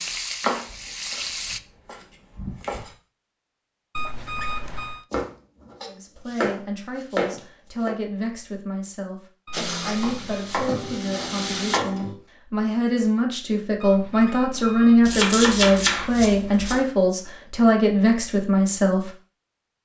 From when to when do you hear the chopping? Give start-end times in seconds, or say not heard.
0.4-2.9, 5.1-8.0, 10.0-12.2, 15.0-16.9.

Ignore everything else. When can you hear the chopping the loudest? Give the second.
16 s.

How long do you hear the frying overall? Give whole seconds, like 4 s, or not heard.
4 s.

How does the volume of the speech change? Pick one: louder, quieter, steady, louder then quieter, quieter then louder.
louder.